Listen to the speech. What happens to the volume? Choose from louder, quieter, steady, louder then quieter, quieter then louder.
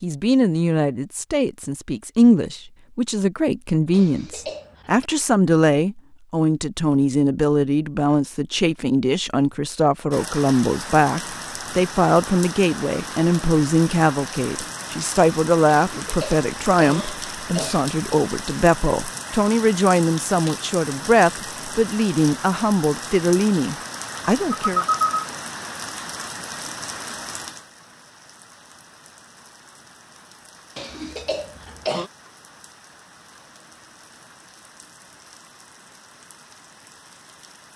steady.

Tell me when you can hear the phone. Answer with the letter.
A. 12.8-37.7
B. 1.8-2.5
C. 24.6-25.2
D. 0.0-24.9
C.